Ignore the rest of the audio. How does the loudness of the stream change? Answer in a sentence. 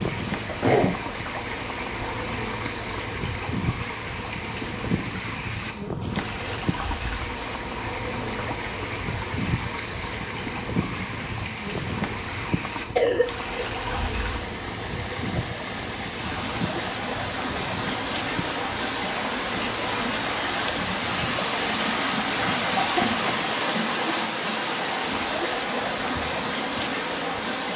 The loudness of the stream goes up.